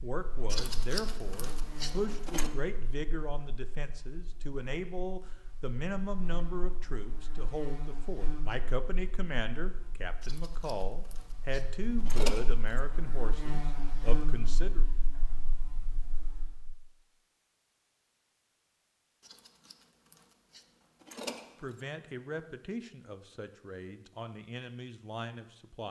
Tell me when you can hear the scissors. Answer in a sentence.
The scissors can be heard from 0.5 to 2.5 s, from 10.2 to 12.8 s and from 19.2 to 21.9 s.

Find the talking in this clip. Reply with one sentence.
The talking can be heard from 0.0 to 14.8 s and from 21.6 to 25.8 s.